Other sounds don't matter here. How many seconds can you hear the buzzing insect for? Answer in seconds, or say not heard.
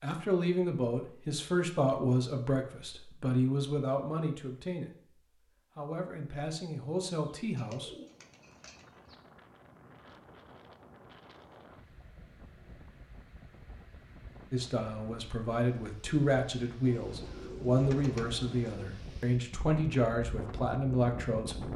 not heard.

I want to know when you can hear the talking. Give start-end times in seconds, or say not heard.
0.0-5.1, 5.8-7.9, 14.5-21.7.